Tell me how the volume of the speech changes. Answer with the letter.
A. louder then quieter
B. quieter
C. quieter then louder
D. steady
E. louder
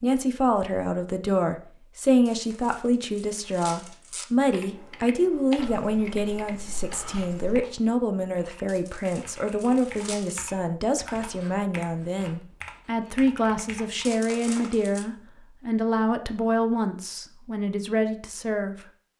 D.